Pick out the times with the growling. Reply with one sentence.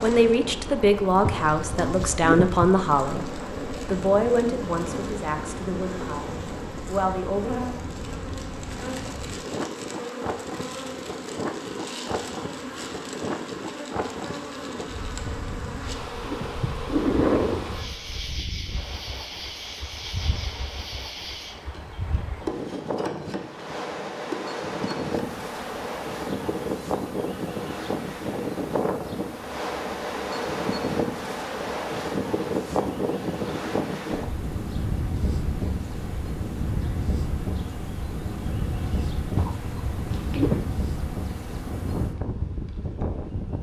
You can hear the growling from 1.2 to 2.7 s, from 15.2 to 17.7 s and from 39.4 to 40.7 s.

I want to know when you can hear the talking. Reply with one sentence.
You can hear the talking from 0.0 to 7.5 s.